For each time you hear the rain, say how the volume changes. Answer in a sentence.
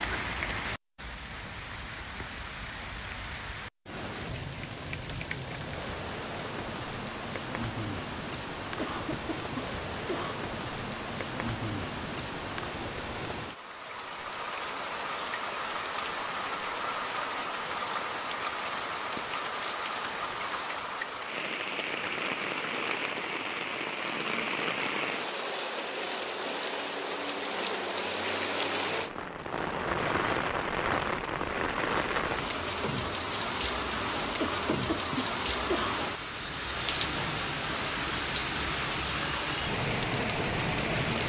You can hear the rain from 0.0 to 41.2 s, getting louder.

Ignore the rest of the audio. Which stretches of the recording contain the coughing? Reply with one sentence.
The coughing can be heard from 8.8 to 10.4 s and from 34.4 to 36.0 s.